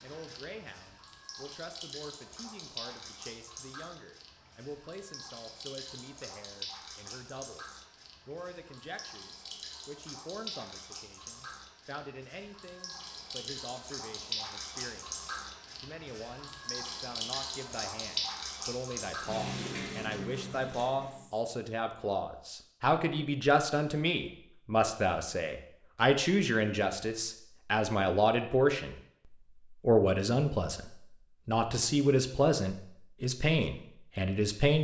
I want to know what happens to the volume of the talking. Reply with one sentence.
The loudness of the talking goes up.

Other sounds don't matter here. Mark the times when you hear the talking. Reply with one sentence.
You can hear the talking from 0.0 to 34.8 s.